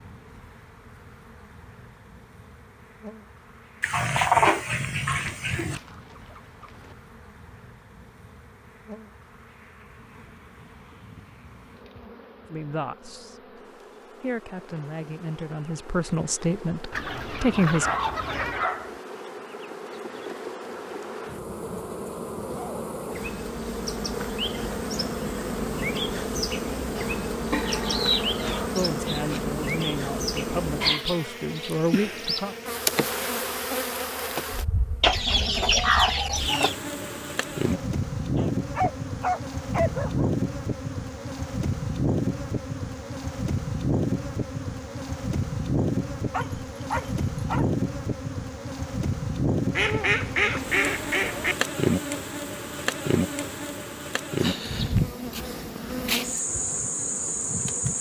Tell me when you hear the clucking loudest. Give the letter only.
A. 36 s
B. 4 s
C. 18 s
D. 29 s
A.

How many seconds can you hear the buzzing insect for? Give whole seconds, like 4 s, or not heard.
58 s.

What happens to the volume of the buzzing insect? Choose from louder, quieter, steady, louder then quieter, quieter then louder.
louder.